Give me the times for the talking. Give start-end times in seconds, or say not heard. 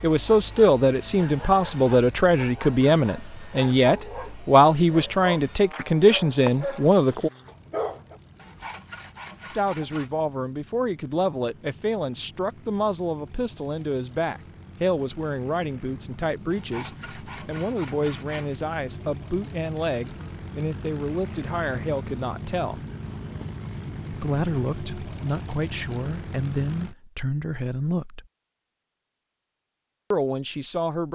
0.0-7.3, 9.5-22.8, 24.1-28.2, 30.1-31.0.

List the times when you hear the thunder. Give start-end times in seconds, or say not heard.
not heard.